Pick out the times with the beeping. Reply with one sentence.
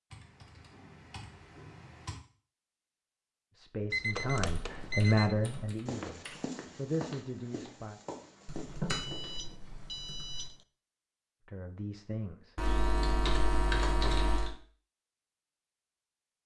The beeping can be heard from 3.9 to 5.3 s and from 8.8 to 10.7 s.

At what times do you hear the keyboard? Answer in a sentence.
The keyboard can be heard from 0.1 to 2.2 s, from 4.5 to 6.5 s, from 8.4 to 10.4 s and from 12.6 to 14.5 s.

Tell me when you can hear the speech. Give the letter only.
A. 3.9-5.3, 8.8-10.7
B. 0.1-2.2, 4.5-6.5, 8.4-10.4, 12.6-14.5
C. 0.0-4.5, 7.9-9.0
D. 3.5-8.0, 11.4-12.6
D.